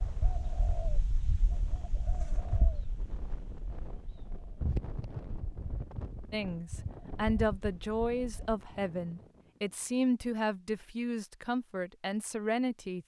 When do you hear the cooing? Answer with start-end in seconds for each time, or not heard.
0.0-8.6.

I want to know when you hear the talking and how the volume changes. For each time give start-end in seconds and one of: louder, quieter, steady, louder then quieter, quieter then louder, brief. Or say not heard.
6.3-13.0 steady.